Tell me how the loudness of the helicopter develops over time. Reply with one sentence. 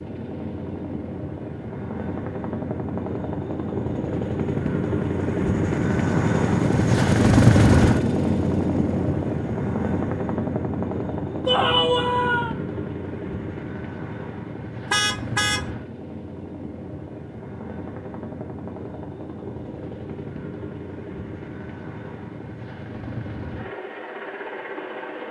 The volume of the helicopter goes up, then down.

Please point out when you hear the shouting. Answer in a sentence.
You can hear the shouting from 11.4 to 12.6 s.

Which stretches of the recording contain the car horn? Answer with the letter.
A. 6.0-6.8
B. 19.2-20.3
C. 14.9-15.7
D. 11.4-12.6
C.